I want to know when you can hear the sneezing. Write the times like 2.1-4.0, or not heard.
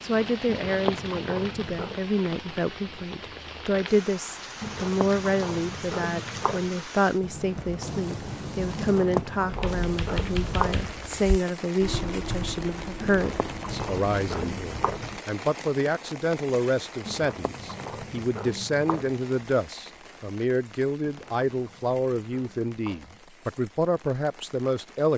not heard.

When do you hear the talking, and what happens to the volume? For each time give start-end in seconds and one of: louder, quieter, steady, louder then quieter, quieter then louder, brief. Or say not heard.
0.0-25.1 steady.